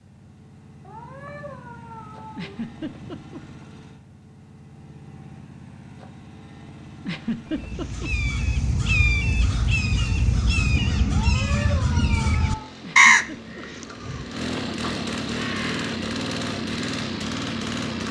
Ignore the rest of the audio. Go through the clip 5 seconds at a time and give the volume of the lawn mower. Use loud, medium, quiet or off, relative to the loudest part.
quiet, quiet, medium, loud.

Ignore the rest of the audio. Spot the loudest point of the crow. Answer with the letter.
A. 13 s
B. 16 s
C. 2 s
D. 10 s
A.